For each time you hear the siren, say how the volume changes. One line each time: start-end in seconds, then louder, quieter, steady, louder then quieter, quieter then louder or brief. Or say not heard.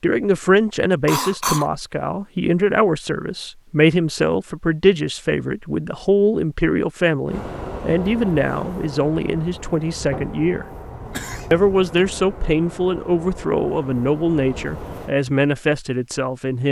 not heard.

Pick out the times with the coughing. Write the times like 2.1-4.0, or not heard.
1.1-1.7, 11.1-12.1.